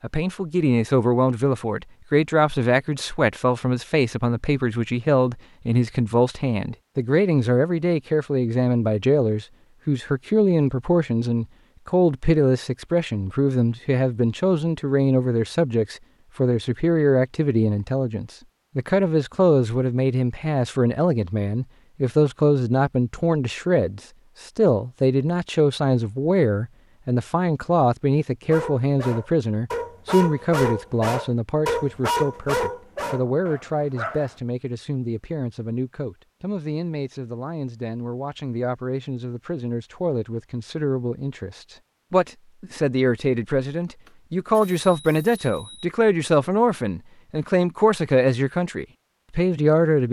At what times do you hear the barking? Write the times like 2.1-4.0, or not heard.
28.5-34.4.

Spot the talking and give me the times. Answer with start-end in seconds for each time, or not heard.
0.0-50.0.